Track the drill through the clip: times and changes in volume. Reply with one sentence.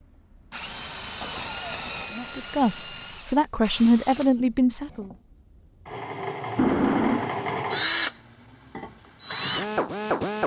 The drill can be heard from 0.0 to 10.4 s, getting quieter then louder.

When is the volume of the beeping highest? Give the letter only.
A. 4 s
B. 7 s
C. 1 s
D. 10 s
B.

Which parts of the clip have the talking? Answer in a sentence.
You can hear the talking from 2.1 to 5.1 s.